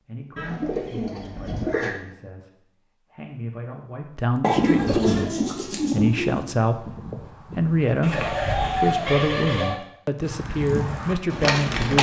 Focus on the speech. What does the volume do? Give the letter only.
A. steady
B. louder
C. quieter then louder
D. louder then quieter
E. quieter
B.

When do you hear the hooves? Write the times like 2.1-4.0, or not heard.
4.7-8.1, 10.2-11.9.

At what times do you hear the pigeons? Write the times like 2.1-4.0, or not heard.
0.3-1.9, 4.4-6.5, 8.0-9.8.